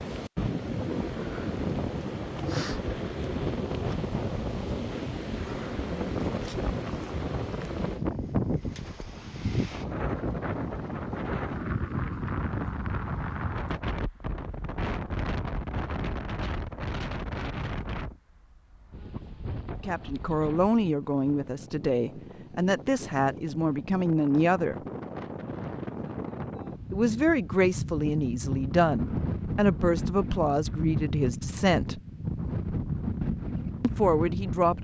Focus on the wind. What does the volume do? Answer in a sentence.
The volume of the wind goes down, then up.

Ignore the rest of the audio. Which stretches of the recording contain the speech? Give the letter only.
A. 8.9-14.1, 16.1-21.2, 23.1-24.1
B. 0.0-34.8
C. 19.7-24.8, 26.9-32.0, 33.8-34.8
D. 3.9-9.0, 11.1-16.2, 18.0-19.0
C.